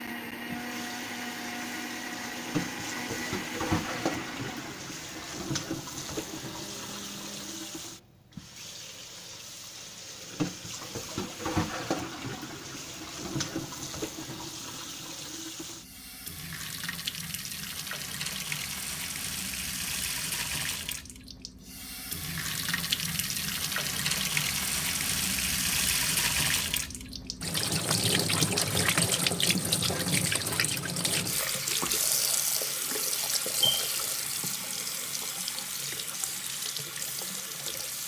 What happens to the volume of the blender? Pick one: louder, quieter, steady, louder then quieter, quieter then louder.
quieter.